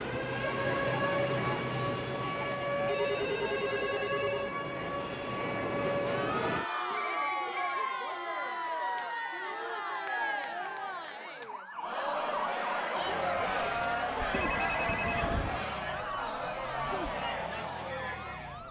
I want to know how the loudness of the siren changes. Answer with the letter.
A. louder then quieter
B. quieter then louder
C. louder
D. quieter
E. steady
D.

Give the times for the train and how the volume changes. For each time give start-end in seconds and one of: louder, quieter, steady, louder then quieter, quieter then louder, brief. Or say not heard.
0.0-6.7 quieter then louder.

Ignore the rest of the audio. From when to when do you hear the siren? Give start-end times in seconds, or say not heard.
0.0-18.6.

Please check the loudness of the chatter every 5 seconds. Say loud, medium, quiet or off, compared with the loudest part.
medium, loud, loud, loud.